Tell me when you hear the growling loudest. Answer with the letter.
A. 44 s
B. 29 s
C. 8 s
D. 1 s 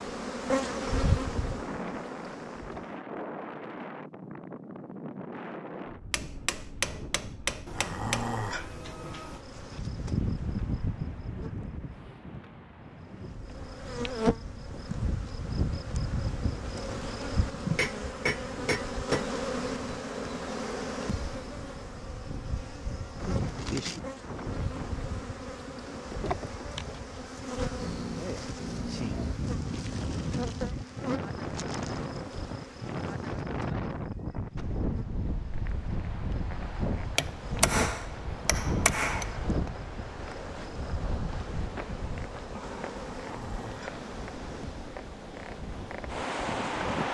C.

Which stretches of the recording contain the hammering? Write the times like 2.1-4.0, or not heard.
6.1-8.3, 17.8-19.2, 37.1-39.7.